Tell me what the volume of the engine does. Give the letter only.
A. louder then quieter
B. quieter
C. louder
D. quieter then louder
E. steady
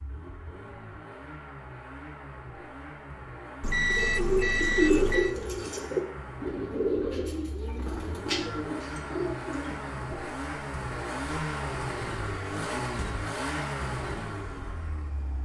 C.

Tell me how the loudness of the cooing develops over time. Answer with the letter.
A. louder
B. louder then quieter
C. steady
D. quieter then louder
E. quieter
E.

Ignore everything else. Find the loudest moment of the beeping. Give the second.
4 s.